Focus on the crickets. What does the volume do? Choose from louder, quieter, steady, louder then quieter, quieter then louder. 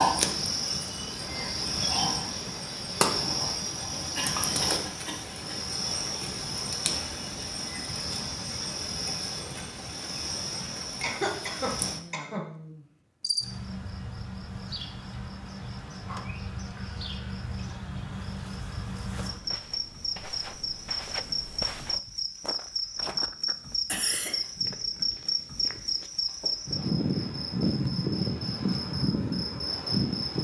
quieter then louder.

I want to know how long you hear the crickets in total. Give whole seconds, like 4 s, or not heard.
30 s.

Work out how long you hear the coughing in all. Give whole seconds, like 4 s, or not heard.
3 s.